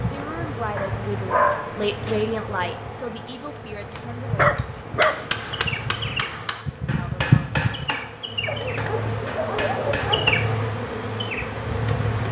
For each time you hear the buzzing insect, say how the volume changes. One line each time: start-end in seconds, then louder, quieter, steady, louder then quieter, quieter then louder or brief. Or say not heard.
0.0-12.2 louder.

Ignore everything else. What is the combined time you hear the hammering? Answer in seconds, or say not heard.
6 s.